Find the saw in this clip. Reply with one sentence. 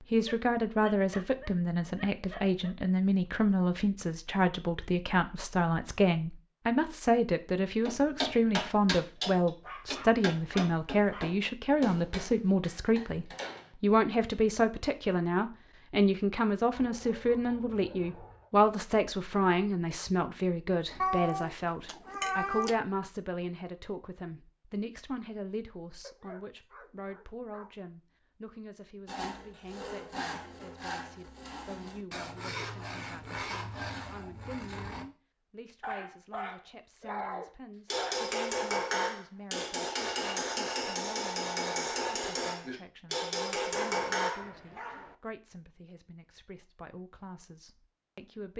The saw can be heard from 29.1 to 35.0 s.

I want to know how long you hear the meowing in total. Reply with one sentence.
You can hear the meowing for 2 seconds altogether.